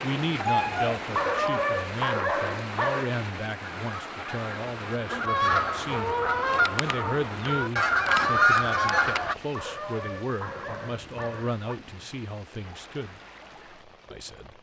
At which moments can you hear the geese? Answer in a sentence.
The geese can be heard from 3.8 to 9.3 s.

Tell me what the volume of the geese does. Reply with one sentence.
The loudness of the geese goes up.